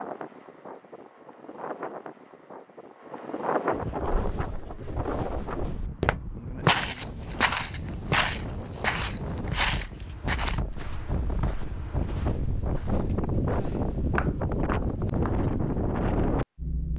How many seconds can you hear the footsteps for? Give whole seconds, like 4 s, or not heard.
11 s.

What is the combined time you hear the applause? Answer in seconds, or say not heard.
not heard.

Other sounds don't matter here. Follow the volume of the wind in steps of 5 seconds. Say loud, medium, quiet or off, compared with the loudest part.
medium, medium, loud, loud.